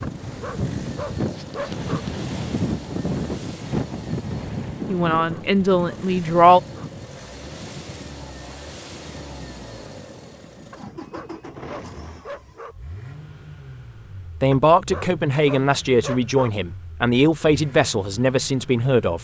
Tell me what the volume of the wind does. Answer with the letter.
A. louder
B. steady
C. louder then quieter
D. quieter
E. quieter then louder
D.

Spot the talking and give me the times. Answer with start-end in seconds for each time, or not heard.
4.8-6.6, 14.4-19.1.